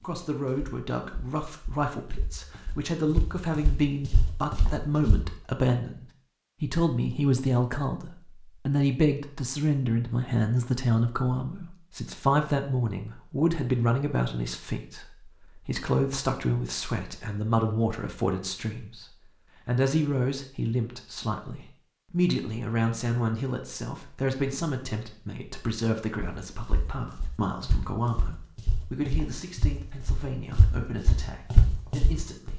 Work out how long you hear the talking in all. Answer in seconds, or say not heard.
32 s.